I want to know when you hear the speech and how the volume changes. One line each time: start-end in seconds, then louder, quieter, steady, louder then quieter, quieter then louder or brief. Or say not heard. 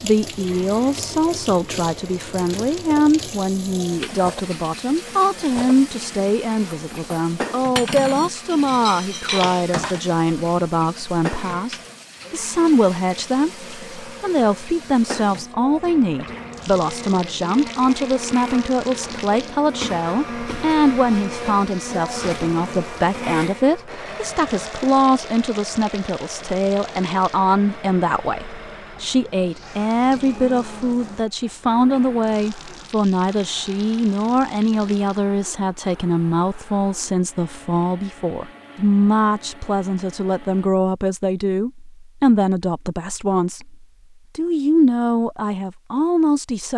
0.0-46.7 steady.